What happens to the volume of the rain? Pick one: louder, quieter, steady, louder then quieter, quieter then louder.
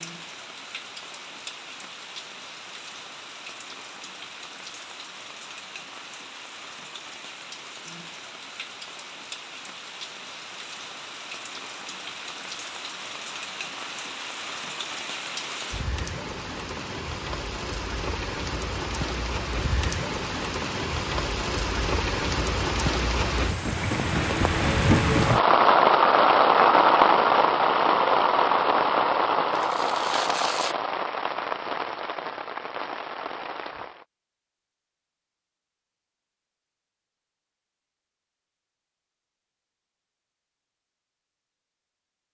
louder.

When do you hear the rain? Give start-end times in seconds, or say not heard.
0.0-34.0.